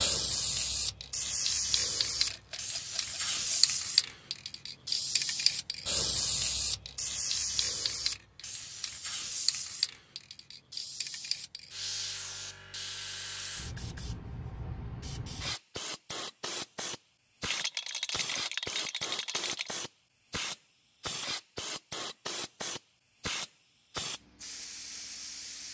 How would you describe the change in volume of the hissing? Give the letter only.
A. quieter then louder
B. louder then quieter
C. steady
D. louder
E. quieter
E.